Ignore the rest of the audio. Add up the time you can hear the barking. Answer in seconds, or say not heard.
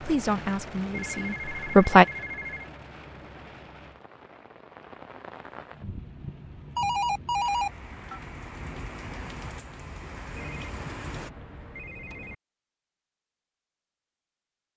not heard.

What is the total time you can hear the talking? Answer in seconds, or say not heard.
2 s.